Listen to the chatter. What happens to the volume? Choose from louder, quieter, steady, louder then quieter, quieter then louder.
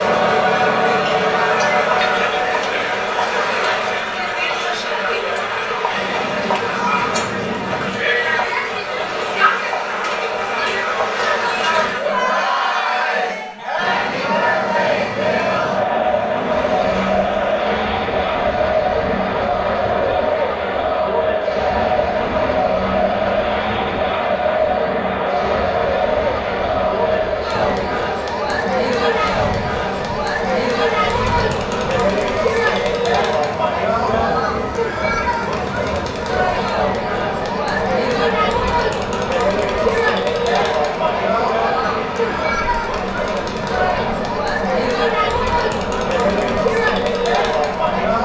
steady.